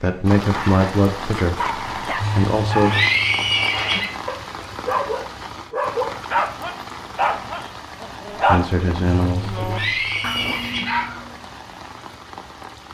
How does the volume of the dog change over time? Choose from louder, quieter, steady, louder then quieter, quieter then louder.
louder then quieter.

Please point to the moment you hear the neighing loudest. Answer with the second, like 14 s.
3 s.